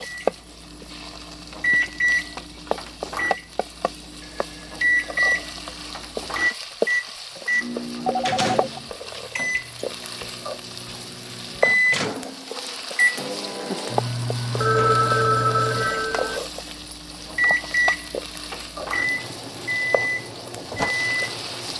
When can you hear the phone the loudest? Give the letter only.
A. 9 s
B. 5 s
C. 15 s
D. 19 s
C.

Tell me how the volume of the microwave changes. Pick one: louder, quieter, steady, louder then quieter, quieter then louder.
steady.